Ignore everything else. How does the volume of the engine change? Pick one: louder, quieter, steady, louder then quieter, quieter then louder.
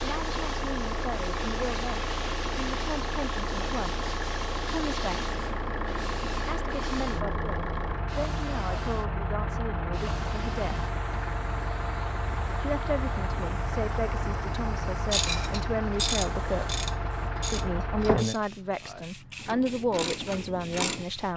steady.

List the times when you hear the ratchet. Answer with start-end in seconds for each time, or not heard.
15.1-21.1.